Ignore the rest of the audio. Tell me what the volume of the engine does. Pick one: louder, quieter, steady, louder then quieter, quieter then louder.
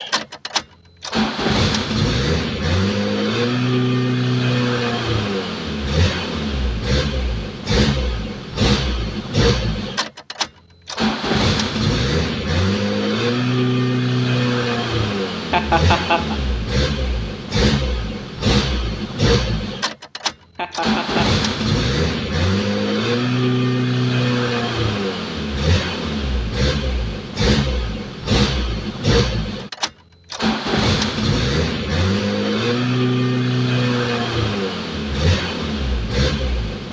steady.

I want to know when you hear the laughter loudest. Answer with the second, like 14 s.
16 s.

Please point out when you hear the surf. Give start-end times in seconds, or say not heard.
not heard.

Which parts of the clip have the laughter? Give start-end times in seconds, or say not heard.
15.5-16.4, 20.6-21.2.